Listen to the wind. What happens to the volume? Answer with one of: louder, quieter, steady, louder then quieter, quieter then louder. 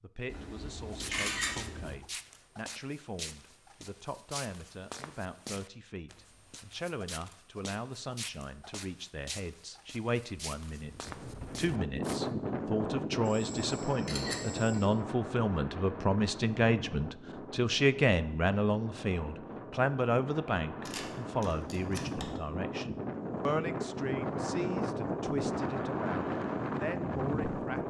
quieter then louder.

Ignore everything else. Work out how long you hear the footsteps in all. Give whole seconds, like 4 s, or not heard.
11 s.